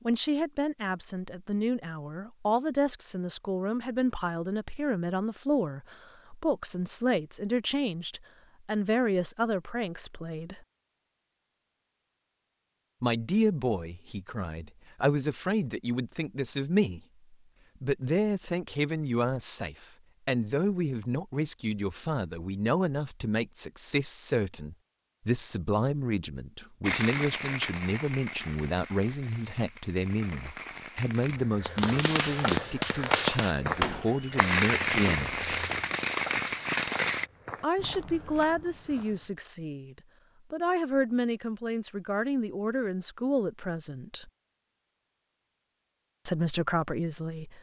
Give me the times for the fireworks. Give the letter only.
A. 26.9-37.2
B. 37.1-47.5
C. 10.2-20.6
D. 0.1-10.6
A.